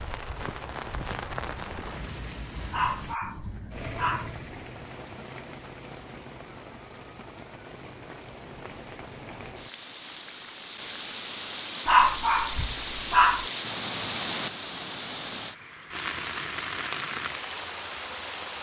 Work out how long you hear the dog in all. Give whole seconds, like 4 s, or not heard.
3 s.